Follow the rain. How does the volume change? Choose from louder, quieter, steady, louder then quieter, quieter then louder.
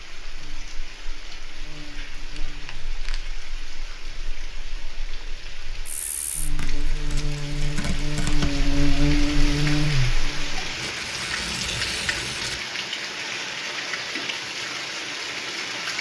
louder.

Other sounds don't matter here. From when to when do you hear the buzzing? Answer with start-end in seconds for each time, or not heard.
0.2-10.7.